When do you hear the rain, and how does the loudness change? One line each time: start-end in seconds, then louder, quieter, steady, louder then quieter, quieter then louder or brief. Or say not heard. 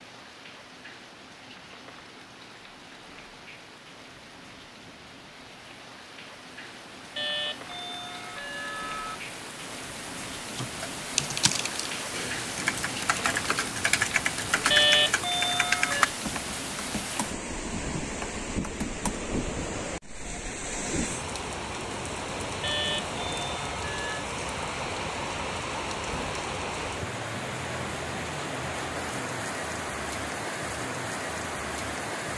0.0-32.3 louder.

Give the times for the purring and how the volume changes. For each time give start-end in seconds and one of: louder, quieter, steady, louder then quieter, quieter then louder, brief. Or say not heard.
not heard.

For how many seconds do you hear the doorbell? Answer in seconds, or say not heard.
5 s.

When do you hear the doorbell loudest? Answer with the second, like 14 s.
15 s.